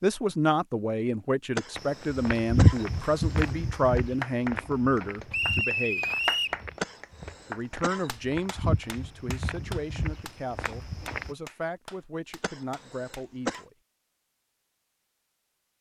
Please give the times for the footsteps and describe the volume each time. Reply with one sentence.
The footsteps can be heard from 1.8 to 11.3 s, getting quieter then louder.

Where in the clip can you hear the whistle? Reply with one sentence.
You can hear the whistle from 5.3 to 6.6 s.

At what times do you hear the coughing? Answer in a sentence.
The coughing can be heard from 1.6 to 3.5 s, from 6.8 to 8.1 s and from 12.4 to 13.7 s.